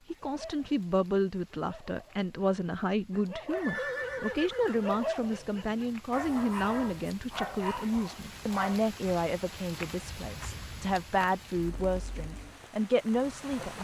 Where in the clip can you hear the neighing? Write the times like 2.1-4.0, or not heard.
3.5-5.0.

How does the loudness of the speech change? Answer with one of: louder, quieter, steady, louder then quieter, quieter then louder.
steady.